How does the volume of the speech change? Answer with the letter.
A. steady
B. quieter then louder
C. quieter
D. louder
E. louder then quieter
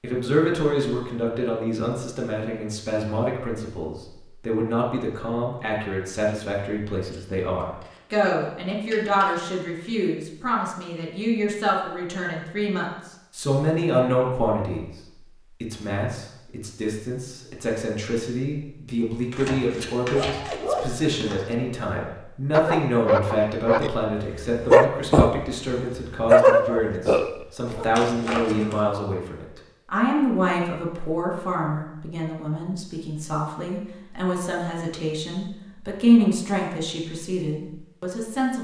A.